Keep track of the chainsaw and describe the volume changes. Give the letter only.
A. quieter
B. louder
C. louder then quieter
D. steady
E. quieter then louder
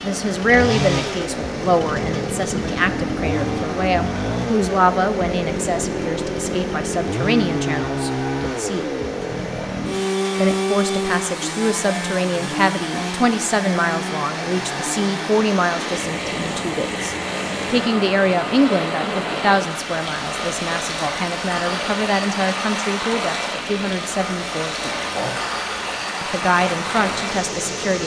A.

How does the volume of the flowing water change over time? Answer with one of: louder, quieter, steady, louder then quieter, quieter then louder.
louder.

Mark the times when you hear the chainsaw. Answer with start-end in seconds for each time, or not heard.
0.0-28.0.